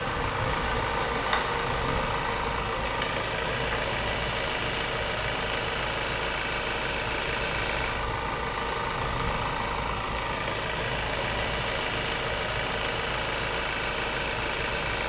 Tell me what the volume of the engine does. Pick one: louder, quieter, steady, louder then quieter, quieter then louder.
steady.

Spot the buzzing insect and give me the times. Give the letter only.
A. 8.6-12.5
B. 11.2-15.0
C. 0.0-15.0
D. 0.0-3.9
D.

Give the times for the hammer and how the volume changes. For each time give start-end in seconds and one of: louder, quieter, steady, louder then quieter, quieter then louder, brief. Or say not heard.
not heard.